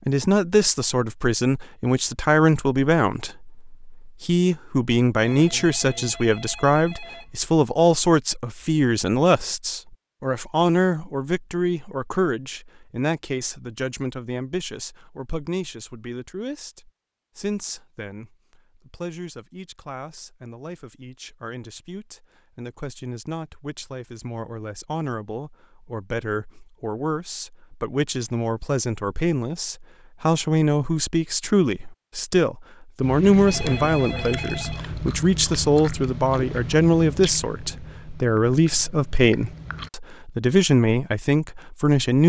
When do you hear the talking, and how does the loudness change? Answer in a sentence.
You can hear the talking from 0.1 to 42.2 s, getting quieter then louder.